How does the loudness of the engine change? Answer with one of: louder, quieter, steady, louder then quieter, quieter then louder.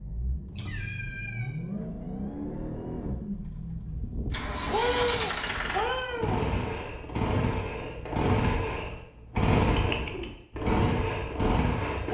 louder.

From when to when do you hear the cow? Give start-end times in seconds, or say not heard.
not heard.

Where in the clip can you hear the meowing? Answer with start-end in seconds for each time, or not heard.
0.6-1.4, 4.7-6.4, 9.7-10.3.